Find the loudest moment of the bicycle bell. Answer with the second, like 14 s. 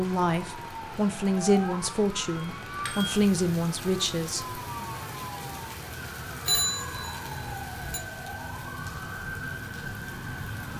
7 s.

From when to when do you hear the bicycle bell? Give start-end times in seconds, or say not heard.
2.4-3.2, 6.5-8.0.